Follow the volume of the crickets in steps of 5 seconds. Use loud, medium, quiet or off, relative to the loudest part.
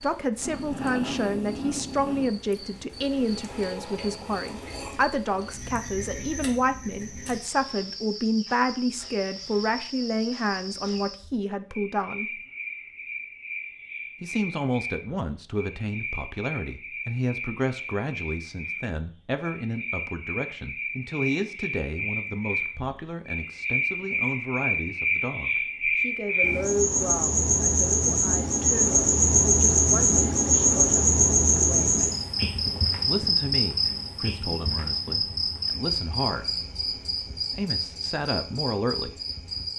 quiet, quiet, quiet, quiet, medium, loud, loud, medium.